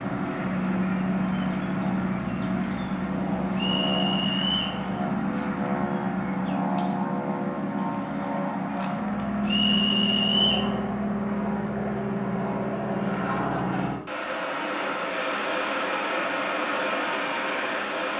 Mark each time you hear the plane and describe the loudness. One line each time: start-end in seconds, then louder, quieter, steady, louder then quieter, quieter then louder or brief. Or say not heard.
0.0-18.1 steady.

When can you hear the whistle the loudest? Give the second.
10 s.